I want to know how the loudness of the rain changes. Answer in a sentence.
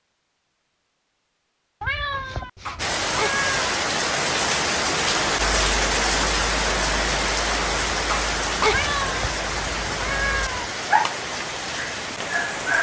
The loudness of the rain goes down.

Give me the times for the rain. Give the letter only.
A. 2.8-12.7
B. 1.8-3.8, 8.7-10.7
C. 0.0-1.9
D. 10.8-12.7
A.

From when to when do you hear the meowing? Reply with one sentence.
The meowing can be heard from 1.8 to 3.8 s and from 8.7 to 10.7 s.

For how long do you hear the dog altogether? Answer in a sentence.
The dog can be heard for 2 seconds in total.